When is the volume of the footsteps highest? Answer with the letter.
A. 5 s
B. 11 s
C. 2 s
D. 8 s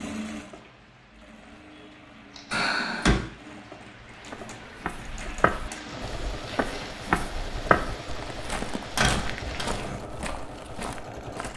D.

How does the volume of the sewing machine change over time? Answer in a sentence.
The loudness of the sewing machine goes up.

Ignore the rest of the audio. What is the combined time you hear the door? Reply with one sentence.
The door can be heard for 2 seconds in total.